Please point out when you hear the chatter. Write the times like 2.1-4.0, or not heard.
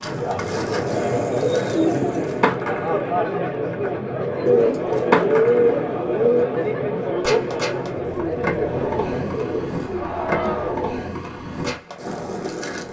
0.0-10.8.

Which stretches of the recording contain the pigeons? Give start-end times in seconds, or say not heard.
0.9-2.5, 4.5-6.5, 9.3-11.1.